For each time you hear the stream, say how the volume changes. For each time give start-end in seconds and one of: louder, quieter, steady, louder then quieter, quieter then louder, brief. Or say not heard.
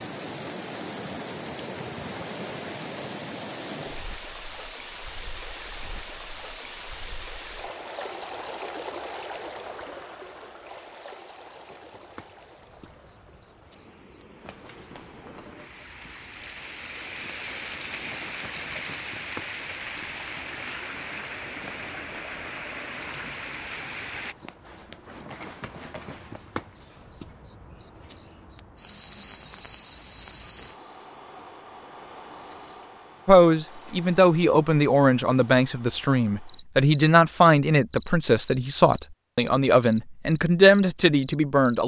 0.0-24.4 quieter then louder.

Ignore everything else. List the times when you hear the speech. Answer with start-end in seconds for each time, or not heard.
33.2-41.8.